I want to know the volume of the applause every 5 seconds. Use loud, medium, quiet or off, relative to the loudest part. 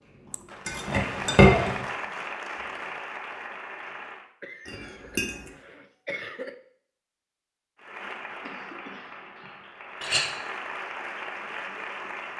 loud, medium, loud.